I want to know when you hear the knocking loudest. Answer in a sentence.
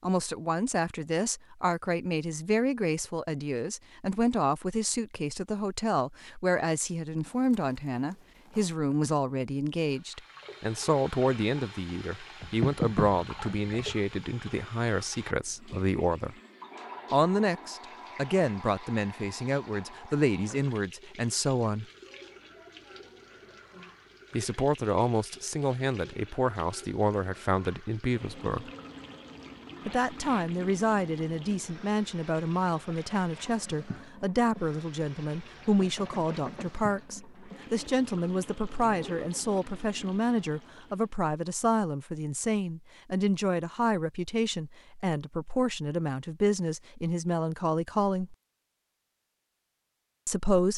The loudest moment of the knocking is at 13 seconds.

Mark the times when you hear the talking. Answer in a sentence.
You can hear the talking from 0.0 to 16.4 s, from 17.1 to 21.9 s, from 24.3 to 28.7 s, from 29.9 to 48.4 s and from 50.2 to 50.7 s.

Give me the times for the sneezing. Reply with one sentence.
The sneezing can't be heard in this clip.